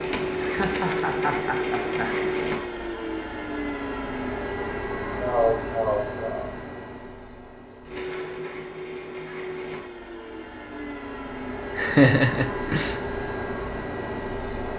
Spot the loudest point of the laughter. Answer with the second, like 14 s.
12 s.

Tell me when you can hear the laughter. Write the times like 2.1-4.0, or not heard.
0.5-2.1, 5.2-6.5, 11.8-12.9.